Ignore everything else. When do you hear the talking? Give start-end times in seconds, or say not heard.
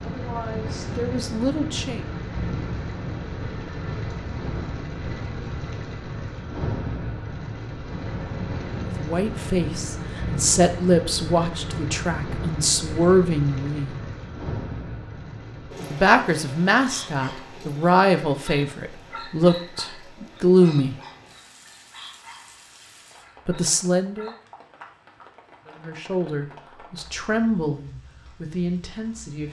0.1-2.0, 8.8-13.9, 15.9-20.9, 23.4-24.3, 25.6-29.4.